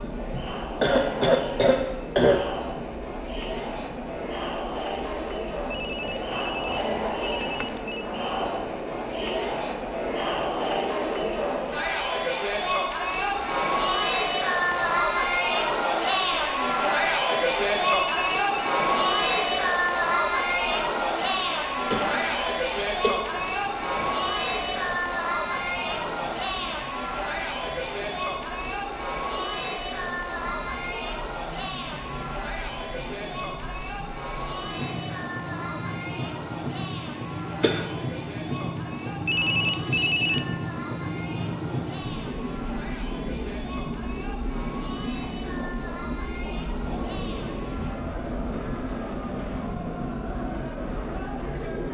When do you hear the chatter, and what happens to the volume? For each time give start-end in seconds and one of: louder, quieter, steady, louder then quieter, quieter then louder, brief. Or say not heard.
0.0-51.8 louder then quieter.